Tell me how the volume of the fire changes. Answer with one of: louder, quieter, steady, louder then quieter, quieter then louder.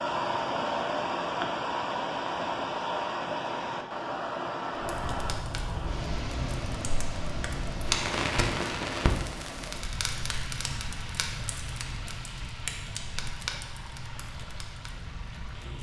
louder then quieter.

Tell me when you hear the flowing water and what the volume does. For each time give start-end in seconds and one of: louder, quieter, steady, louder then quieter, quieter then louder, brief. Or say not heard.
0.0-15.7 quieter.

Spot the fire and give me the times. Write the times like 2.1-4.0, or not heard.
4.8-15.7.